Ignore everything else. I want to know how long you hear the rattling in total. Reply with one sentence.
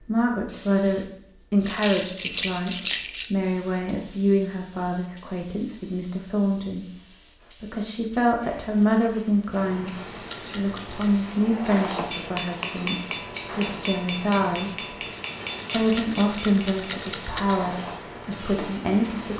The rattling can be heard for 5 seconds in total.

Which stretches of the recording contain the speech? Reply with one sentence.
You can hear the speech from 0.0 to 14.9 s and from 15.7 to 19.3 s.